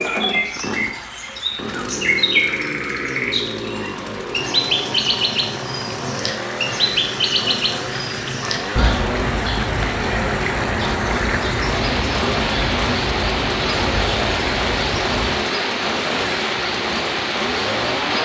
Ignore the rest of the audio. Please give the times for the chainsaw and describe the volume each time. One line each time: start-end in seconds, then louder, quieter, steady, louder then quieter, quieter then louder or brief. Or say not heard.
0.0-18.1 steady.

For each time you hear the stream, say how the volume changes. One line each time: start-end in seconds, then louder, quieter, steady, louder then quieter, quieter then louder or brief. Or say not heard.
0.0-18.1 louder.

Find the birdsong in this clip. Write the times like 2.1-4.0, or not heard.
0.0-15.4.